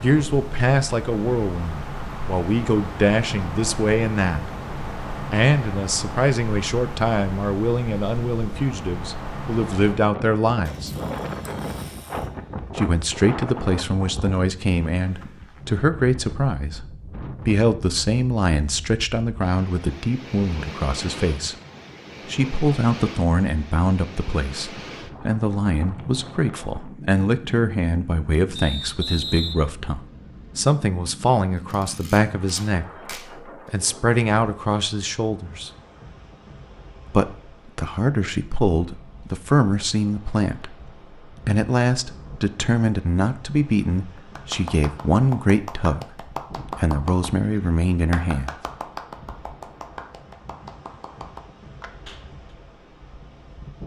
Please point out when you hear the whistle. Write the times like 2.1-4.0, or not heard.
28.6-29.6.